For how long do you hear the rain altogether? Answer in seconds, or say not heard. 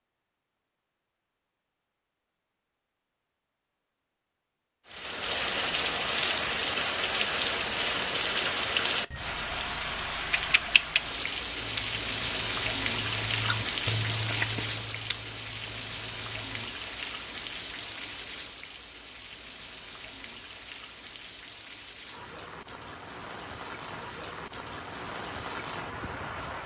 22 s.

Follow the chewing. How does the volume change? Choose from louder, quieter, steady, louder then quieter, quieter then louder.
louder then quieter.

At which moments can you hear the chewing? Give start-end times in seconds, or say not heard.
11.6-16.7.